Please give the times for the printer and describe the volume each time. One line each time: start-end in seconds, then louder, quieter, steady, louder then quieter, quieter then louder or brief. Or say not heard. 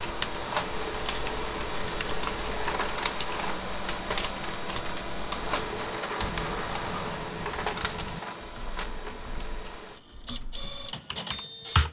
0.0-11.8 quieter.